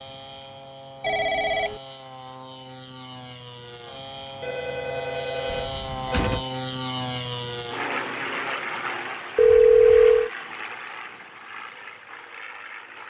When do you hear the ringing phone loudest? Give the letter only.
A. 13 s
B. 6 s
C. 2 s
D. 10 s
D.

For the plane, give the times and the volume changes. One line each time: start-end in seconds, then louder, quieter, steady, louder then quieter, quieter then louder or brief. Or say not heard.
0.0-13.0 louder then quieter.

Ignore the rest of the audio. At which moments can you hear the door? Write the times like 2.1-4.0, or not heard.
5.5-6.5.